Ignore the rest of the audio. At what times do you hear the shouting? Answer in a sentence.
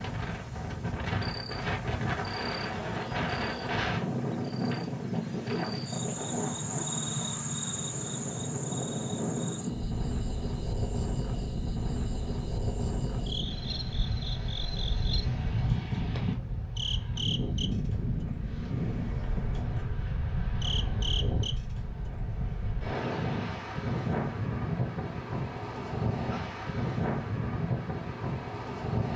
The shouting can't be heard in this clip.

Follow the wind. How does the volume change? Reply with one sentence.
The volume of the wind stays about the same.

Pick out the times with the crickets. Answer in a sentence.
You can hear the crickets from 0.0 to 22.9 s.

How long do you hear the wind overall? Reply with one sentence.
You can hear the wind for 29 seconds altogether.